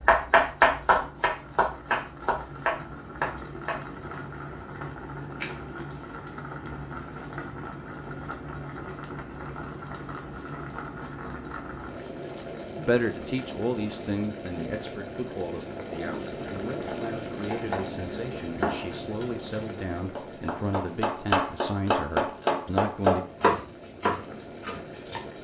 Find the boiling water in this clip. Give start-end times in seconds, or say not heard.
0.0-25.3.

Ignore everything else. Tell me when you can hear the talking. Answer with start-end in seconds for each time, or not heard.
12.8-23.2.